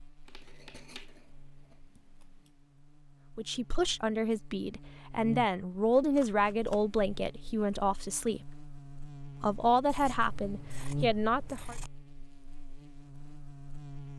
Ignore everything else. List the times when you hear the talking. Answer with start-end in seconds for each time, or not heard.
3.4-8.5, 9.4-11.8.